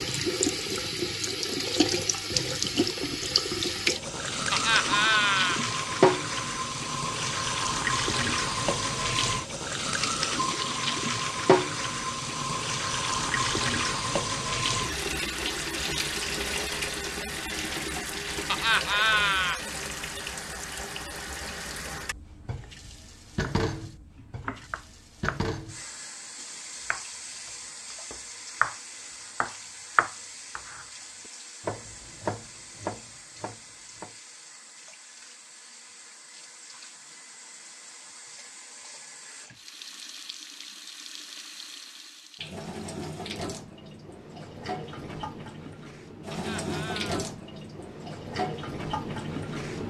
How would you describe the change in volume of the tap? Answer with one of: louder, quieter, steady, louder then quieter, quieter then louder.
quieter then louder.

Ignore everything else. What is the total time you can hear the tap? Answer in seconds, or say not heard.
50 s.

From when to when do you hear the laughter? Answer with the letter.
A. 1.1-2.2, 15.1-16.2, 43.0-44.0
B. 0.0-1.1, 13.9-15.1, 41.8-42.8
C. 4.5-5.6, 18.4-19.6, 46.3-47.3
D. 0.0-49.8
C.